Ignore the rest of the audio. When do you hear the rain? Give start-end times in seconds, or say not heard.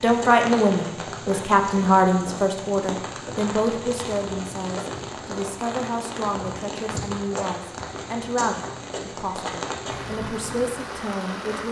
0.0-11.6.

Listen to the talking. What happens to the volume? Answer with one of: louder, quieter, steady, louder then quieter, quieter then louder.
quieter.